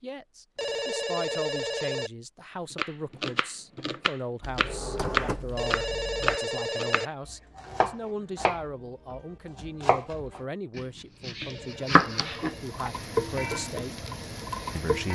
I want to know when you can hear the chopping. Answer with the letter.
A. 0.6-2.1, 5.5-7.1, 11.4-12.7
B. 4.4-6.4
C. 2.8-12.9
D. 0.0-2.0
C.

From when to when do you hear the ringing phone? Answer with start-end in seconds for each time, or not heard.
0.6-2.1, 5.5-7.1, 11.4-12.7.